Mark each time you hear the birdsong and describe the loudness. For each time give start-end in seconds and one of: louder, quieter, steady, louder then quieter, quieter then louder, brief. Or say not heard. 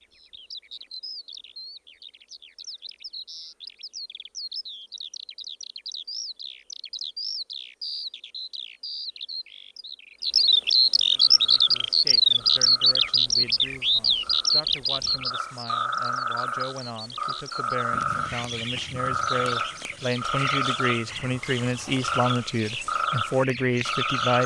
0.0-24.4 louder then quieter.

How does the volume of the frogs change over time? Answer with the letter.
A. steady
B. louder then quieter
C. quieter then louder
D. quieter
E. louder
E.